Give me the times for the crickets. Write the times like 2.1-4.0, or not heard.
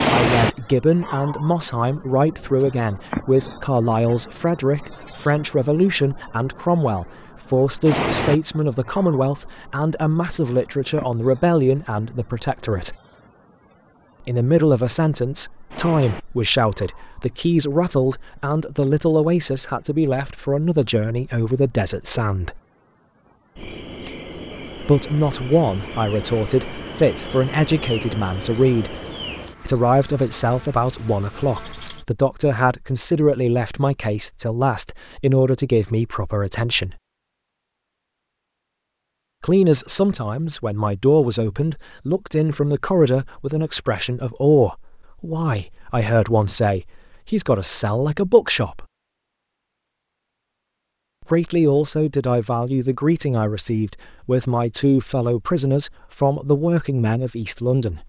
0.0-32.0.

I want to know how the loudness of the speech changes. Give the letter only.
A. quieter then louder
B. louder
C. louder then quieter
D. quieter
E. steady
E.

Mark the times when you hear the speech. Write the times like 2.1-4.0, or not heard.
0.1-12.9, 14.2-22.6, 24.8-28.9, 29.6-37.0, 39.4-48.9, 51.2-58.0.